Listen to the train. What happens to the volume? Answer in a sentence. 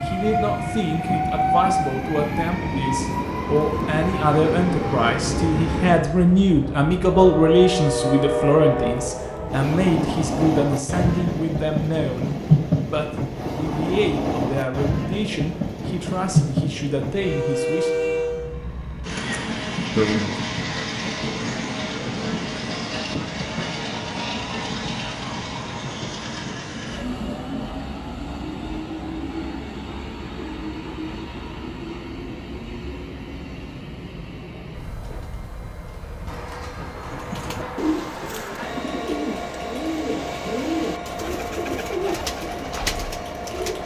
The loudness of the train goes down.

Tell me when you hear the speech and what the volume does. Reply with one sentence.
You can hear the speech from 0.0 to 17.9 s, getting louder then quieter; and briefly from 19.9 to 20.4 s.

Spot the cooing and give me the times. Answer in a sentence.
The cooing can be heard from 36.9 to 43.8 s.